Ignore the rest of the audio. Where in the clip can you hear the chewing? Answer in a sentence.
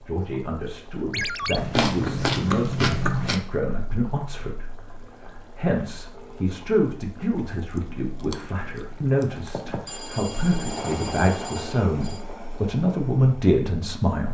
The chewing can be heard from 1.5 to 3.4 s and from 7.5 to 9.7 s.